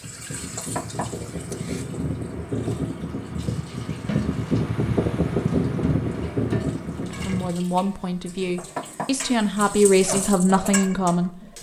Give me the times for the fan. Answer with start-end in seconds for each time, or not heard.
0.0-7.5.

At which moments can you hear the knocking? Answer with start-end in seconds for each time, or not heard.
0.6-1.9, 8.6-9.3.